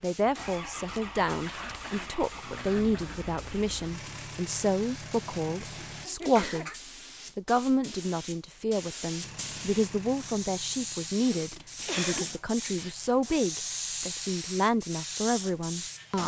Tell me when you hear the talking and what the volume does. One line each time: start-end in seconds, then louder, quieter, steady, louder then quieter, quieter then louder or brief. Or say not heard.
0.0-16.2 steady.